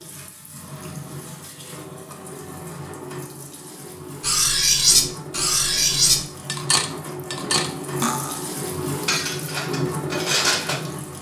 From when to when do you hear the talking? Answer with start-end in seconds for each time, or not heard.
not heard.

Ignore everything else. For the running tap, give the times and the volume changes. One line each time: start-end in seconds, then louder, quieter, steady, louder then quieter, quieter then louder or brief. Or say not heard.
0.0-11.1 louder.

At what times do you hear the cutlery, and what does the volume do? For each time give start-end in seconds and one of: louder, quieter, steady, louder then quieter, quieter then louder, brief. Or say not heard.
4.2-8.4 quieter
9.1-10.8 brief.